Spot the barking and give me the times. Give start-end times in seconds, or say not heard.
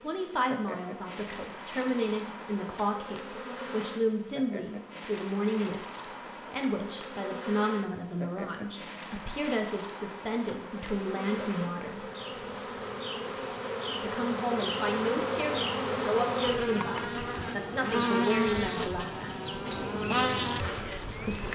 not heard.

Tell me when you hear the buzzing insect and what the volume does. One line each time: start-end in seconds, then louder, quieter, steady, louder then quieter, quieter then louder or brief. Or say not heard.
0.0-21.4 louder.